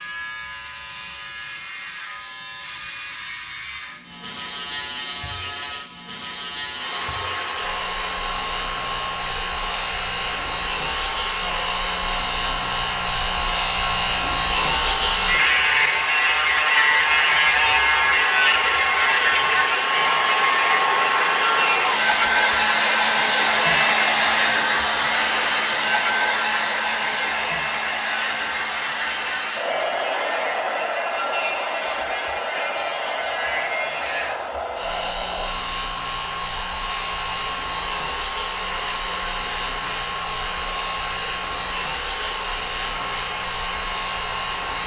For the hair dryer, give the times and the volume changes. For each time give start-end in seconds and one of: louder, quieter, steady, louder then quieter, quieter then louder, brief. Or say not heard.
6.7-44.8 louder then quieter.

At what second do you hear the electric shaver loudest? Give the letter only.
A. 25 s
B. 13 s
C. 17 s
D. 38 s
C.